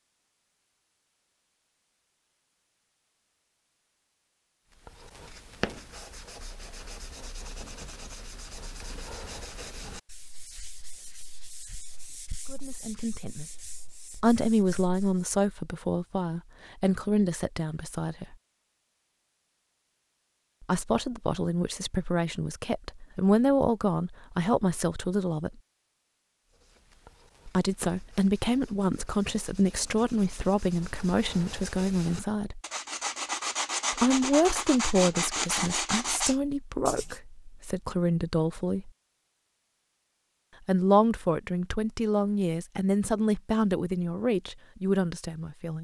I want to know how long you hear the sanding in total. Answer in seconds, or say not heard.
21 s.